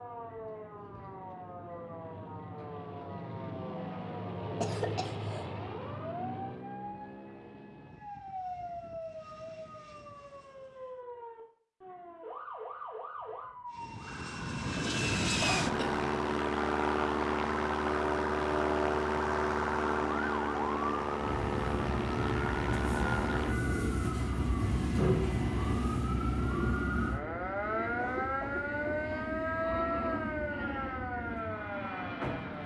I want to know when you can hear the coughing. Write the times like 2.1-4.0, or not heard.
4.6-5.5, 15.4-16.0, 27.9-29.1.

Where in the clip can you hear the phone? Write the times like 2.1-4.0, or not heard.
not heard.